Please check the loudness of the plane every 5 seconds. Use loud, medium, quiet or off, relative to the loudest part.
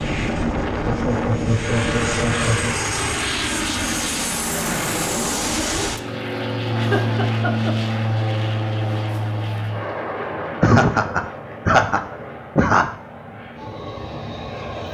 loud, loud, medium.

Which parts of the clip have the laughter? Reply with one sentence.
The laughter can be heard from 0.8 to 2.8 s, from 6.8 to 7.8 s and from 10.6 to 12.9 s.